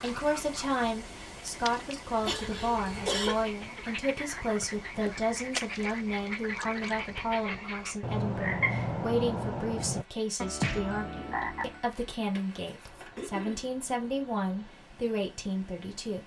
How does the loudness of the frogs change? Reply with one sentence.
The loudness of the frogs goes up.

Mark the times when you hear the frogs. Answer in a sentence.
You can hear the frogs from 0.0 to 11.8 s.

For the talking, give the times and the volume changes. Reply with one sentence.
You can hear the talking from 0.0 to 16.2 s, at a steady volume.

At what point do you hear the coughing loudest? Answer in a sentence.
The volume of the coughing peaks at 3 seconds.